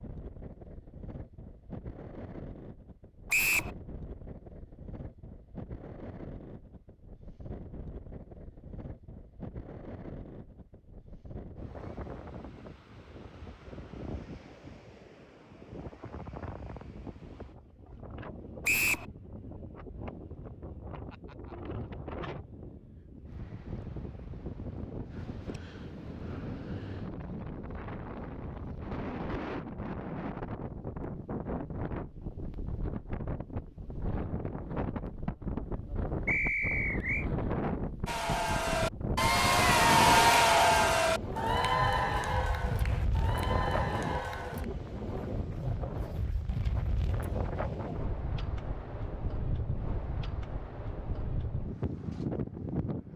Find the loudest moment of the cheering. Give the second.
40 s.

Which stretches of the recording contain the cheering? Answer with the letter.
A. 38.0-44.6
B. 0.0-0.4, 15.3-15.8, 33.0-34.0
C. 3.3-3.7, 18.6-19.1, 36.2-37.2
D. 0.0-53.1
A.